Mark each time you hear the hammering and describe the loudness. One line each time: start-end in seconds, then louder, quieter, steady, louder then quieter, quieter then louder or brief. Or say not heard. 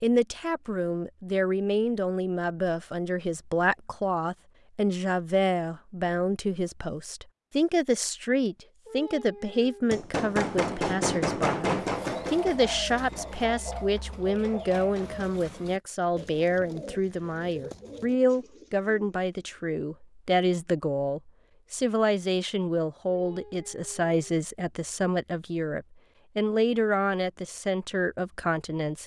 9.9-15.6 quieter.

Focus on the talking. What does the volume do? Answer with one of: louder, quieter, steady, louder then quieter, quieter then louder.
steady.